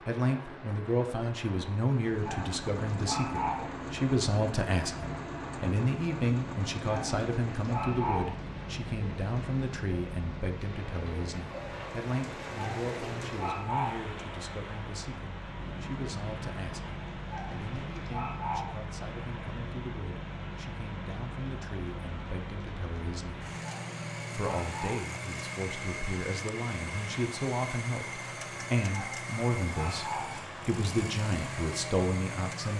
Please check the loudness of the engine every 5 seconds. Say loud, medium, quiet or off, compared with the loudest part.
loud, loud, medium, loud, loud, loud, loud.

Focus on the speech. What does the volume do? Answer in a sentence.
The loudness of the speech goes down, then up.